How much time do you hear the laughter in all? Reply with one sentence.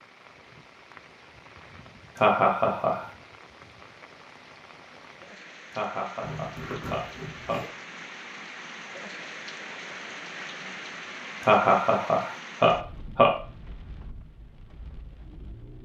The laughter can be heard for 5 seconds in total.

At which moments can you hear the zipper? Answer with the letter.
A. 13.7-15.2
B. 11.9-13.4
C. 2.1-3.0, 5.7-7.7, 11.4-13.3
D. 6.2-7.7
D.